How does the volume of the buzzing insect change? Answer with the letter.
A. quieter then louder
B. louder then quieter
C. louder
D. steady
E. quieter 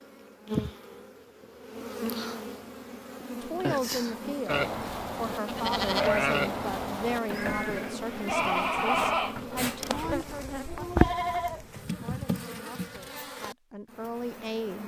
D.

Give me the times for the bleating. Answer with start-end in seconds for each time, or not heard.
4.5-11.7.